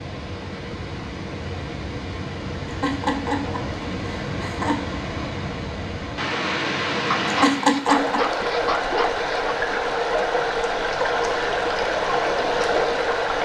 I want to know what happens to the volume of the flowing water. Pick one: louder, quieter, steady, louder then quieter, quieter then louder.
louder.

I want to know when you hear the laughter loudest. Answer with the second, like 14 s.
8 s.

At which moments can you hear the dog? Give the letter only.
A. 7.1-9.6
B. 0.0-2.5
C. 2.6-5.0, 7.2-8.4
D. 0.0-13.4
A.